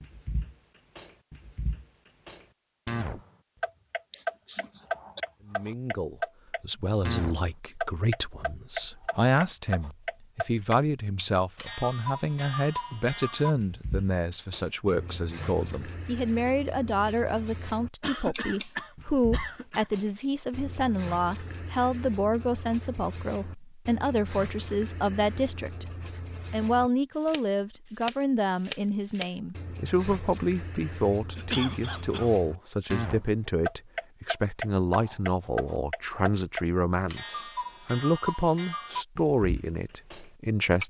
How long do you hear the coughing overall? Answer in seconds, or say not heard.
4 s.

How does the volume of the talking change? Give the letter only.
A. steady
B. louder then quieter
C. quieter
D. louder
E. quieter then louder
A.